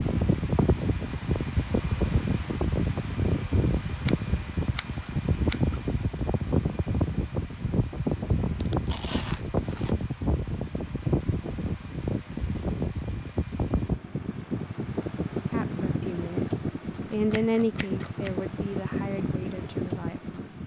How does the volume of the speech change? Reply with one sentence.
The volume of the speech goes up, then down.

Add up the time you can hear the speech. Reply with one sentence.
You can hear the speech for 5 seconds altogether.